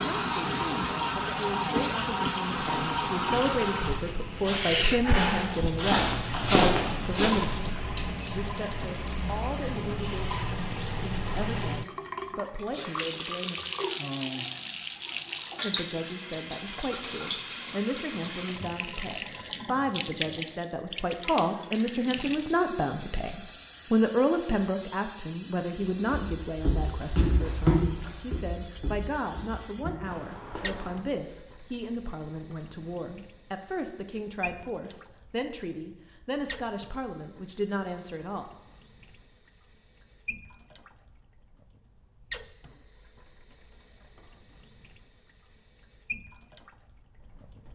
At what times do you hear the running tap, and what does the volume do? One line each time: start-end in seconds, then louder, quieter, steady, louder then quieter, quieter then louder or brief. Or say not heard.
0.0-47.6 quieter.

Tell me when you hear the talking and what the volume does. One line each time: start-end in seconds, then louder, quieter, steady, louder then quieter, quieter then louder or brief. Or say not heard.
0.0-13.6 louder then quieter
15.6-38.5 louder then quieter.